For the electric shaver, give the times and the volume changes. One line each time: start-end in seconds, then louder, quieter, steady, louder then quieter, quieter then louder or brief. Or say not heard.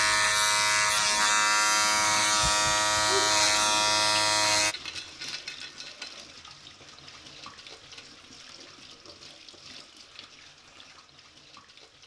0.0-4.8 steady.